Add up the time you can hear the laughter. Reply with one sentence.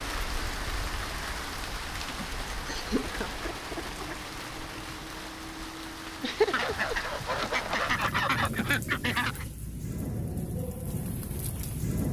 The laughter can be heard for 2 seconds in total.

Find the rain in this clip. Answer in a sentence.
You can hear the rain from 0.0 to 12.0 s.